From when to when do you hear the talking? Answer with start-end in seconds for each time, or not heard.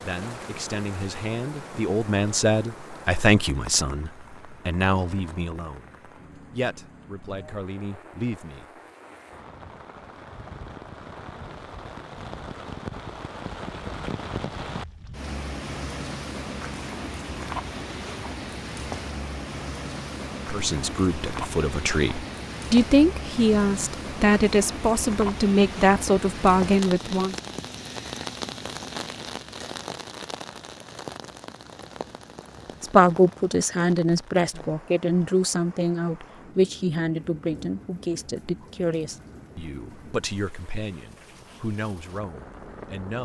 0.0-8.7, 20.5-27.4, 32.8-43.1.